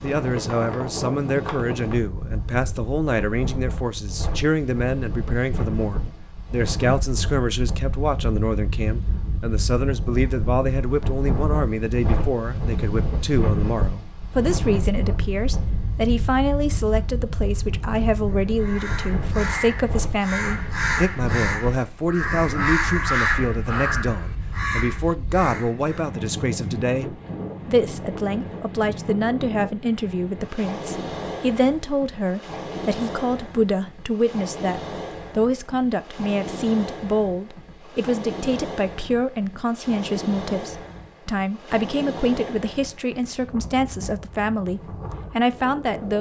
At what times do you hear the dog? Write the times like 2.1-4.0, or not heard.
not heard.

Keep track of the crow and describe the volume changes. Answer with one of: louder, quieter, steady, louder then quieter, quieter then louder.
louder then quieter.